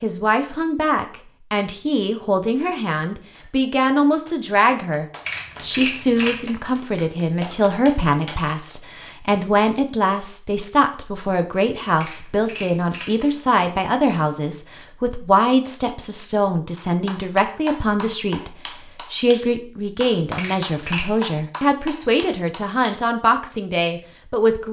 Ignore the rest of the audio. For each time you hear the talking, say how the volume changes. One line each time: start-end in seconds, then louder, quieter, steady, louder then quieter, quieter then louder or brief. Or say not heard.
0.0-24.6 steady.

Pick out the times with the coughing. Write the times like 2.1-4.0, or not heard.
not heard.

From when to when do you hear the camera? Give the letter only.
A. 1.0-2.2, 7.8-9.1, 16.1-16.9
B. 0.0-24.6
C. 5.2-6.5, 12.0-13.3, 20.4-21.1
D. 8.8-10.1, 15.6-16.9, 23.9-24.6
C.